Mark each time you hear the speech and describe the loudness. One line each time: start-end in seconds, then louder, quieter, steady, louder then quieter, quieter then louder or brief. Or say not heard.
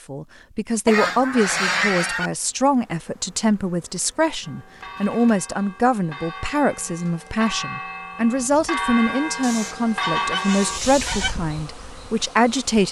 0.1-12.8 steady.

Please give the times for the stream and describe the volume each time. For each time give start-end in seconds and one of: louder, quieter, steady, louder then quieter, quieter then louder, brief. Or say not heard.
not heard.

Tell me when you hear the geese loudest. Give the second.
2 s.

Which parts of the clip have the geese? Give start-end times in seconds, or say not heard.
0.8-2.3, 9.4-11.3.